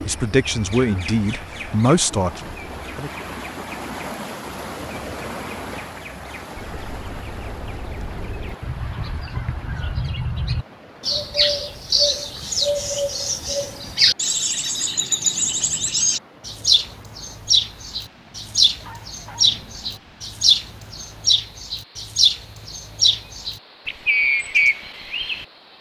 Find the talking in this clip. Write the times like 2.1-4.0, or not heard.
0.1-3.1.